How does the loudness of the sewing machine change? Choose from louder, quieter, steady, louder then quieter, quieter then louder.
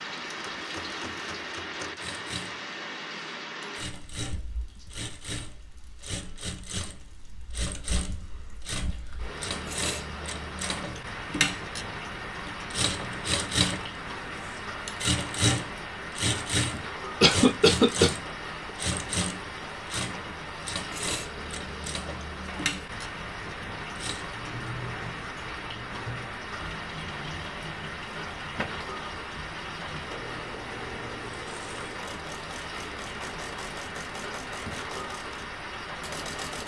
louder then quieter.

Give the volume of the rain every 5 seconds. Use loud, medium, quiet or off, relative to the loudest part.
loud, medium, loud, loud, loud, loud, loud, loud.